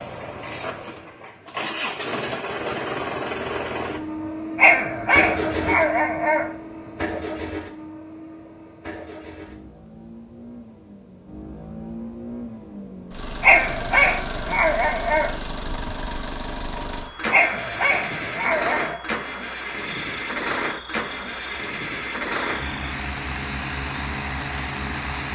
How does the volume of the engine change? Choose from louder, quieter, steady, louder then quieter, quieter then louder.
quieter then louder.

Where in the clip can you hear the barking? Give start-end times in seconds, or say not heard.
4.5-6.5, 13.4-15.3, 17.3-19.0.